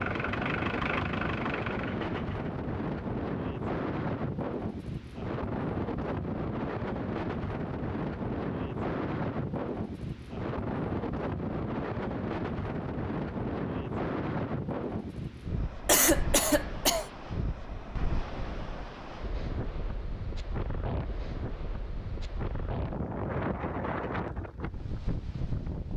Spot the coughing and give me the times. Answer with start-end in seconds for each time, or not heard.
15.8-17.1.